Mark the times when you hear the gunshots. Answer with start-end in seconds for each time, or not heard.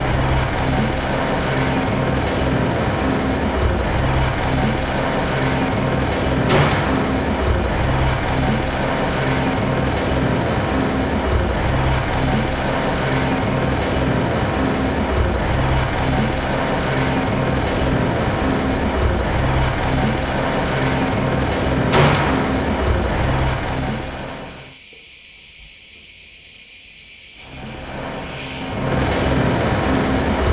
6.5-7.0, 21.9-22.5.